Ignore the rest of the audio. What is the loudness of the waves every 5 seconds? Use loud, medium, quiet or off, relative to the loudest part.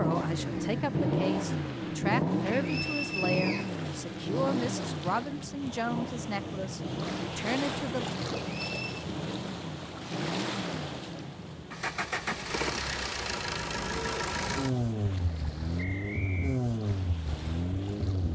medium, loud, loud, medium.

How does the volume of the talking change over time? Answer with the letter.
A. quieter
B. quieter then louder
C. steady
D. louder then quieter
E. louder
C.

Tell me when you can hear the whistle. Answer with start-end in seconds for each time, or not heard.
2.5-3.7, 8.3-9.1, 15.8-16.6.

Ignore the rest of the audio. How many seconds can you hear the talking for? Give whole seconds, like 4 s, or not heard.
8 s.